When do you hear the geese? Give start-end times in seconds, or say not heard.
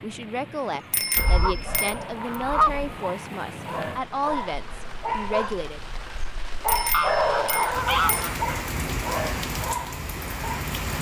1.1-3.0, 6.9-8.7.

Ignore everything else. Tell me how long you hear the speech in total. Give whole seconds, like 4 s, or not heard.
6 s.